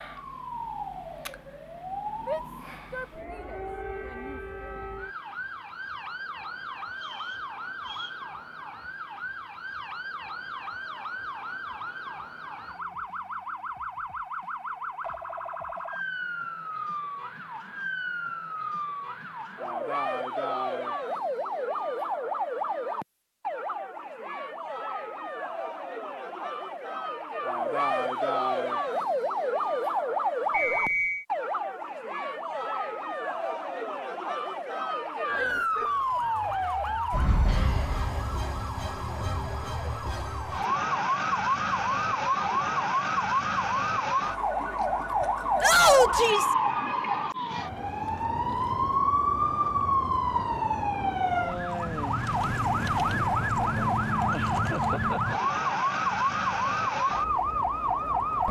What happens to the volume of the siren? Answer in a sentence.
The volume of the siren goes up.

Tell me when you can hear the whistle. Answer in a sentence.
You can hear the whistle from 7.0 to 8.2 s and from 30.5 to 31.2 s.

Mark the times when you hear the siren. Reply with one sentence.
You can hear the siren from 0.0 to 58.4 s.